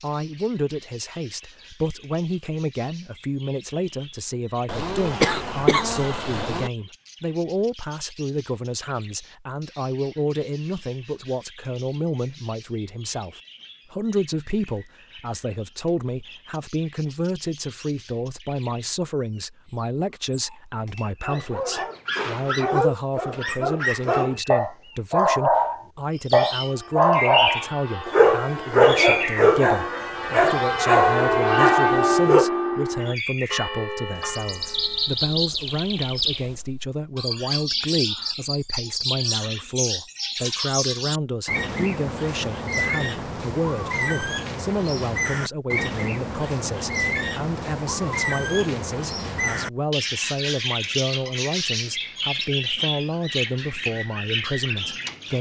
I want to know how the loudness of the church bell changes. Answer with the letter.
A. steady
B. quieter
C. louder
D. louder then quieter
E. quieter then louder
D.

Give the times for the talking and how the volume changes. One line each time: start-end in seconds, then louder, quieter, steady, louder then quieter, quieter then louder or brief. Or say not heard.
0.0-55.3 steady.